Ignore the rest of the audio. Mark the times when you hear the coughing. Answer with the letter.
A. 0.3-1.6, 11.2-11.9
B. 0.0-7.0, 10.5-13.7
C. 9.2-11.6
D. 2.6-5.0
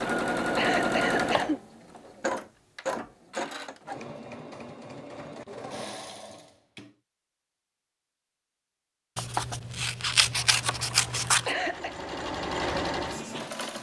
A.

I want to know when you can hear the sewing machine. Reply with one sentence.
The sewing machine can be heard from 0.0 to 7.0 s and from 10.5 to 13.7 s.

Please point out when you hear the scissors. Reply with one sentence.
You can hear the scissors from 9.2 to 11.6 s.